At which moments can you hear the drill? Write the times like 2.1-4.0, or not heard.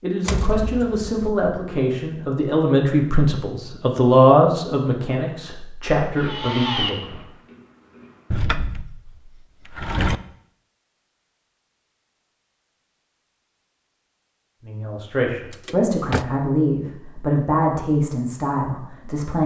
6.2-8.5.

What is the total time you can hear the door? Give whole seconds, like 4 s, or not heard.
4 s.